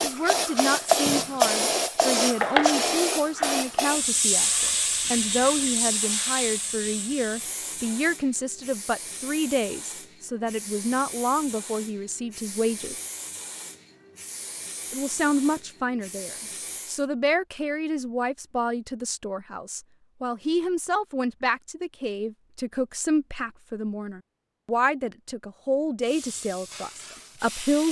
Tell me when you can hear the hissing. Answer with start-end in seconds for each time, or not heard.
0.0-17.1, 26.1-27.8.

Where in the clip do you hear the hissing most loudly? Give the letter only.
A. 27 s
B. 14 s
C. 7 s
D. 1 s
D.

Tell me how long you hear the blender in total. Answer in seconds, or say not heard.
not heard.